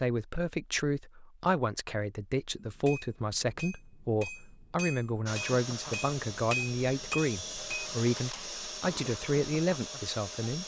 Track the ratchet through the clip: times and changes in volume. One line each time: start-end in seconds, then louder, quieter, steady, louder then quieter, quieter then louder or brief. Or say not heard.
not heard.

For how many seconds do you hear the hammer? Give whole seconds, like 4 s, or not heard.
5 s.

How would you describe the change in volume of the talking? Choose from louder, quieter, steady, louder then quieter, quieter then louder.
steady.